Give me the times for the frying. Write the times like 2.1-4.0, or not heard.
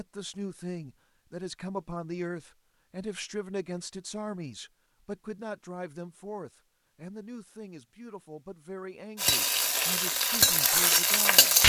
9.2-11.6.